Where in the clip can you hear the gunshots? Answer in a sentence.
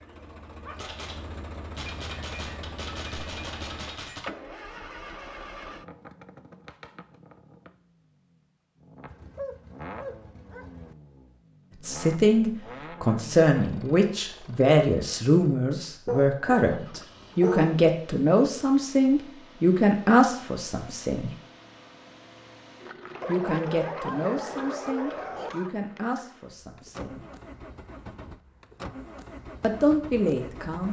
The gunshots can be heard from 0.8 to 4.2 s.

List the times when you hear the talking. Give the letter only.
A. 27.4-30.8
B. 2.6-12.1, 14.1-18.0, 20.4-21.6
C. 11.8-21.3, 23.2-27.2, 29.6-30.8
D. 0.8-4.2
C.